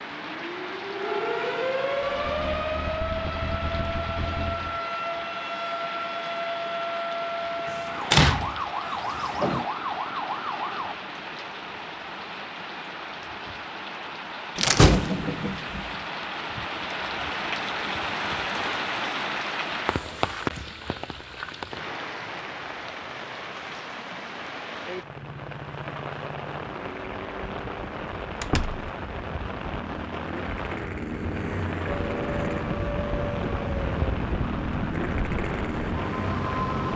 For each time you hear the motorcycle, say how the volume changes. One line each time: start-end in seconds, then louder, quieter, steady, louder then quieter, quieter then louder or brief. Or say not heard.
1.9-4.8 brief
24.9-36.8 louder.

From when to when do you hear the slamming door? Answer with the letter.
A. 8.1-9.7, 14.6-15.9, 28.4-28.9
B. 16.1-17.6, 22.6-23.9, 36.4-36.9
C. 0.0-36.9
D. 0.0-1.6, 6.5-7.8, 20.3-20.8
A.